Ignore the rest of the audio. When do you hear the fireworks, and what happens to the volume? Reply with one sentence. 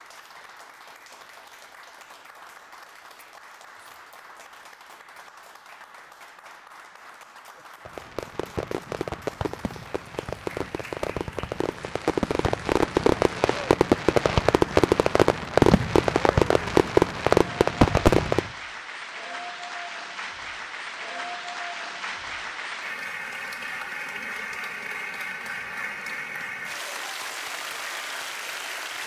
The fireworks can be heard from 7.8 to 18.5 s, getting louder.